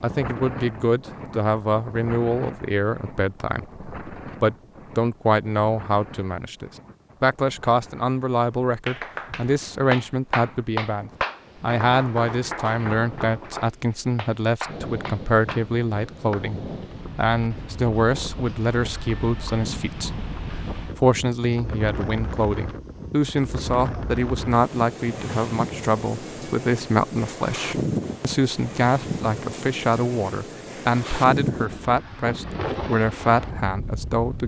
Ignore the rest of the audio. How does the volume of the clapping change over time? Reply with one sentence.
The volume of the clapping goes down.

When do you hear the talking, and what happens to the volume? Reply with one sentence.
The talking can be heard from 0.0 to 34.4 s, at a steady volume.